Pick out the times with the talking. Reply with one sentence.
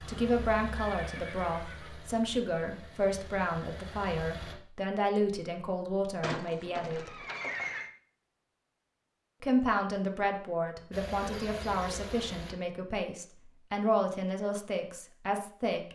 The talking can be heard from 0.0 to 7.2 s and from 9.4 to 15.9 s.